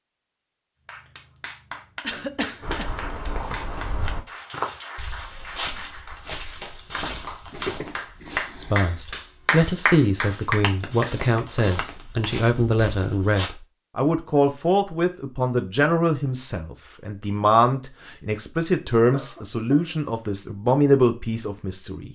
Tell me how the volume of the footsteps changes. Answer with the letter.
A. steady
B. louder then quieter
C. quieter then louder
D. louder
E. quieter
C.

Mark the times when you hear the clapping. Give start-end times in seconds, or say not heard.
0.8-12.4.